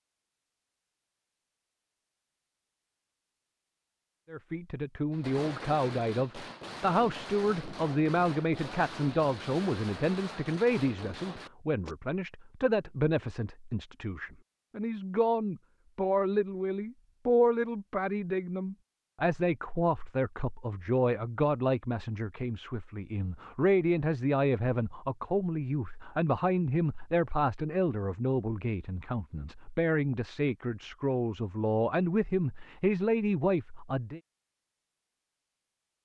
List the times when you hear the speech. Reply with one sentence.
The speech can be heard from 4.3 to 34.2 s.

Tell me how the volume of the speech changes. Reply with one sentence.
The volume of the speech stays about the same.